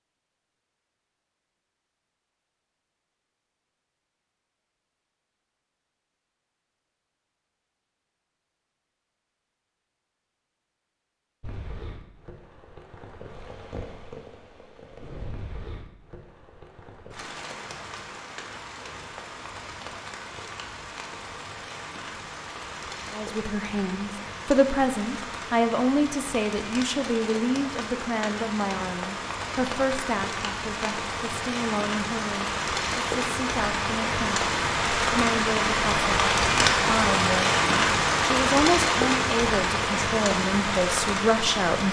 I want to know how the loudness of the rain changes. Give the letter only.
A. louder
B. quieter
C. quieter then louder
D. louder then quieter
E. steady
A.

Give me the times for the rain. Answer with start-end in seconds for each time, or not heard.
11.4-41.8.